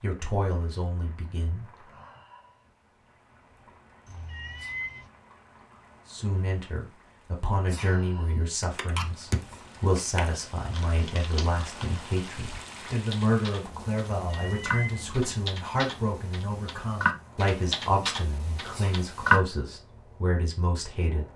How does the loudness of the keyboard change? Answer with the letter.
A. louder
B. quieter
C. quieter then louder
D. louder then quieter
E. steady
C.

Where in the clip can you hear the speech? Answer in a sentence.
The speech can be heard from 0.0 to 1.8 s and from 6.1 to 21.2 s.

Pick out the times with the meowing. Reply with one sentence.
You can hear the meowing from 4.0 to 5.1 s and from 14.2 to 15.1 s.